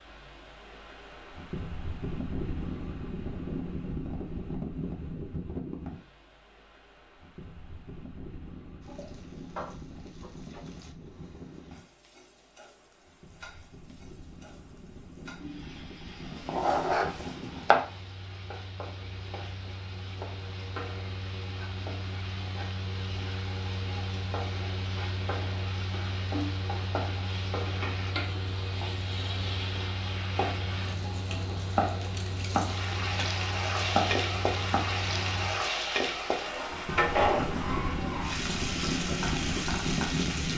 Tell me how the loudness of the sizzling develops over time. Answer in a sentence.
The volume of the sizzling goes up.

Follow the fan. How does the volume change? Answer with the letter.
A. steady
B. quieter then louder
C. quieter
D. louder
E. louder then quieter
B.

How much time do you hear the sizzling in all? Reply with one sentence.
You can hear the sizzling for 32 seconds altogether.